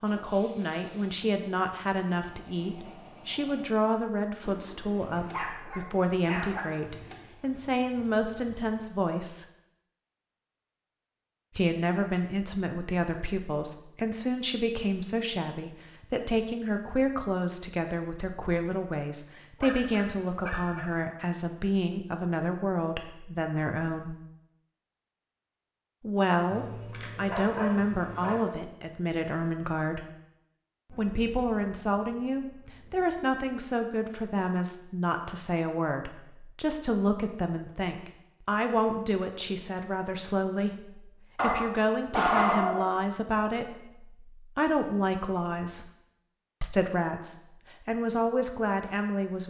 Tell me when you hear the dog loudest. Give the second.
42 s.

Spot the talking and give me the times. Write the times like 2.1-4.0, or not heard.
0.0-9.4, 11.6-24.1, 26.0-30.1, 30.9-45.9, 46.6-49.4.